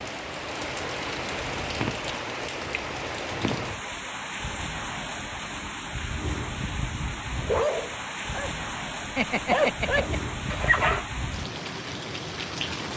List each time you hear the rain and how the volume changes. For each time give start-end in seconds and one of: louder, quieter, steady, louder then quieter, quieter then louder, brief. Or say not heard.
0.0-12.9 steady.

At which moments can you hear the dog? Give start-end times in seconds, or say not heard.
7.4-11.1.